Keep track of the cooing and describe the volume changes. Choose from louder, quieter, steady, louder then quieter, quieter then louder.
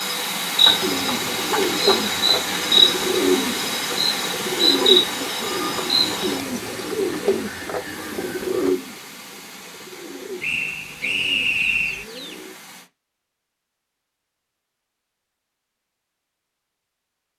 quieter.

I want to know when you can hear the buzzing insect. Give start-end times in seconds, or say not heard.
0.0-6.4.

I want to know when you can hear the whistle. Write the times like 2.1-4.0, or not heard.
10.4-12.1.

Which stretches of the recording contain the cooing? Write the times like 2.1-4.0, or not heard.
0.7-12.6.